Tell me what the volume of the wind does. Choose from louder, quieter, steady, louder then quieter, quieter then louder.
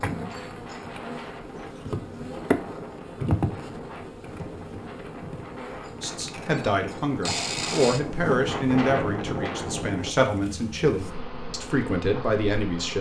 louder.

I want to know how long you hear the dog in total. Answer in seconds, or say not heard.
not heard.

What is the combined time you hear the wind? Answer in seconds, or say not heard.
10 s.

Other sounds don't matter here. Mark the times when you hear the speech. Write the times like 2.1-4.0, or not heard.
6.0-12.9.